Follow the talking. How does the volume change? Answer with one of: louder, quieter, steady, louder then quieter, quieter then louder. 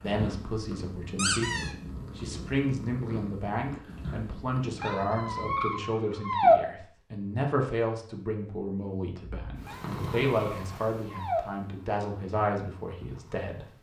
steady.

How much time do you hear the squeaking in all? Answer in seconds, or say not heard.
4 s.